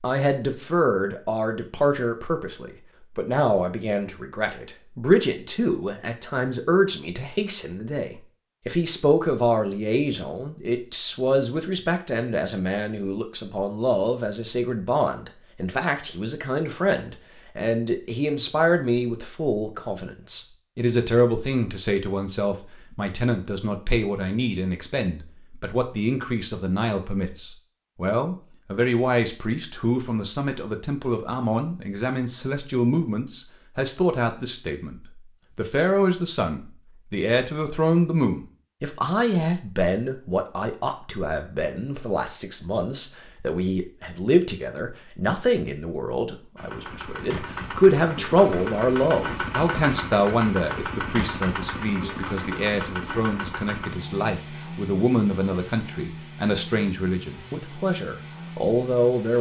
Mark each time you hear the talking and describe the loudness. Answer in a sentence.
You can hear the talking from 0.0 to 59.3 s, at a steady volume.